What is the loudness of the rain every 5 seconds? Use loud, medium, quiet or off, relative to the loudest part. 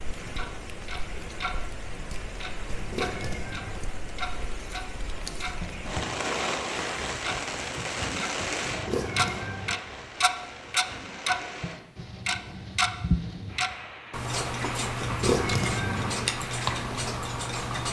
medium, loud, medium, medium.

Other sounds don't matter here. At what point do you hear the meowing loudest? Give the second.
15 s.